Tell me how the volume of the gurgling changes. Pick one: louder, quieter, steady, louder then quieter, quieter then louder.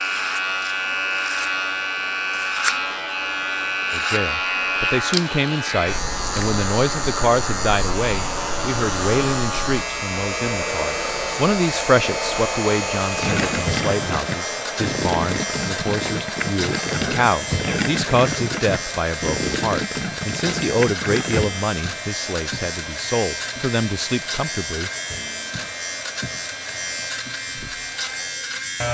steady.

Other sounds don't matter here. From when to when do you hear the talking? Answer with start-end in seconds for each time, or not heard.
3.9-24.9.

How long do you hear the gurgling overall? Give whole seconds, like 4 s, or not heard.
8 s.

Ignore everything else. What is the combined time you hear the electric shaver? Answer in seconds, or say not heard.
29 s.